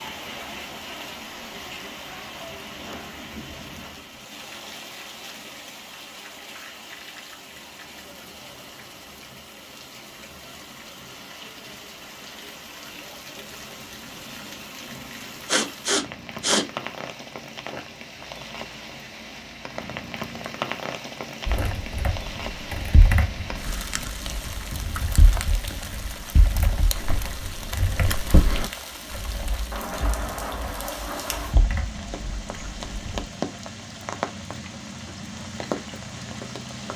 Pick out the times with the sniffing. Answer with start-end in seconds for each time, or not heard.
15.4-16.6.